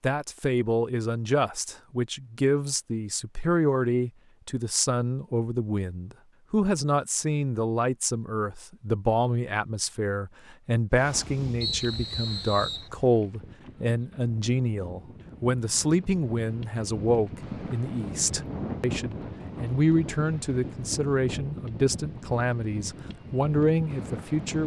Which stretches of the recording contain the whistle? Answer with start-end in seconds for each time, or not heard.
11.6-12.9.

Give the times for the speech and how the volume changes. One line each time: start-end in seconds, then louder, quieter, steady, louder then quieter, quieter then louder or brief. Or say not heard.
0.0-24.6 steady.